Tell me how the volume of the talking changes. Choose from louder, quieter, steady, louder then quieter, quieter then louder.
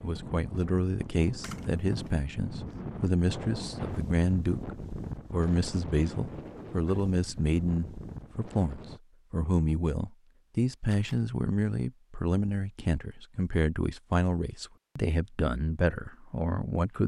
steady.